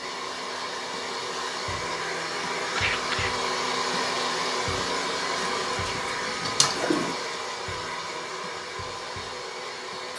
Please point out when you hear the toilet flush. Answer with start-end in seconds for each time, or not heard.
5.3-7.2.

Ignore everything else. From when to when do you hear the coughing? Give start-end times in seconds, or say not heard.
2.8-3.5.